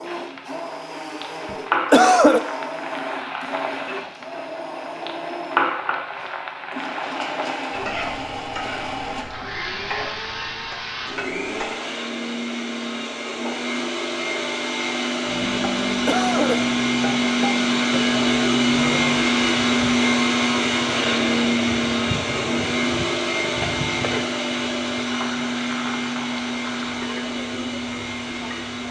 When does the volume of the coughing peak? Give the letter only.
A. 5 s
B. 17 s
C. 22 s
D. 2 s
D.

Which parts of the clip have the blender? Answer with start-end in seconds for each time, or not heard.
0.0-28.8.